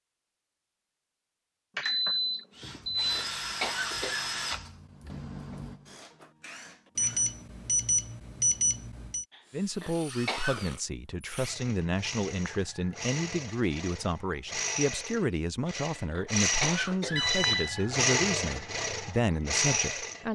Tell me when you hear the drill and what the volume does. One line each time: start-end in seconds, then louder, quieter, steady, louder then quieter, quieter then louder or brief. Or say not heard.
2.5-7.3 quieter
9.4-20.2 louder.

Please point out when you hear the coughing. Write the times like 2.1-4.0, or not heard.
2.6-4.3, 9.3-10.7, 15.7-17.4.